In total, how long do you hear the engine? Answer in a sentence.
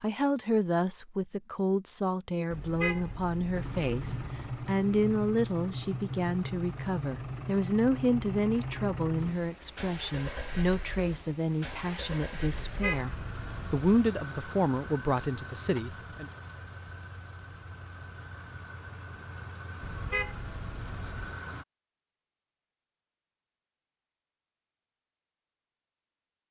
You can hear the engine for 18 seconds altogether.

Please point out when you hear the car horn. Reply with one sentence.
You can hear the car horn from 2.5 to 4.3 s, from 12.5 to 13.8 s and from 19.8 to 21.4 s.